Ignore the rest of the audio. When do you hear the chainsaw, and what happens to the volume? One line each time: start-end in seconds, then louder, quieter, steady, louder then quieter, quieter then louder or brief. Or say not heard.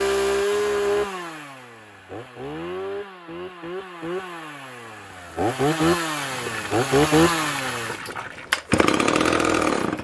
0.0-9.9 quieter then louder.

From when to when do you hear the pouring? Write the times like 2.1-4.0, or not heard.
6.2-8.6.